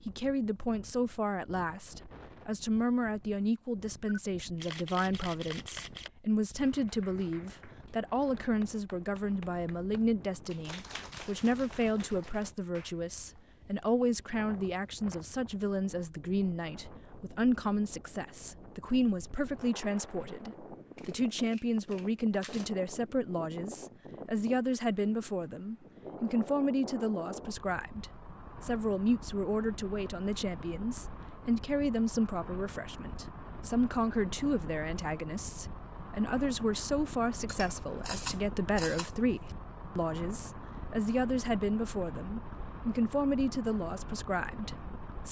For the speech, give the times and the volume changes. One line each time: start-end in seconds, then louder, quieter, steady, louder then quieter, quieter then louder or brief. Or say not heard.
0.1-45.2 steady.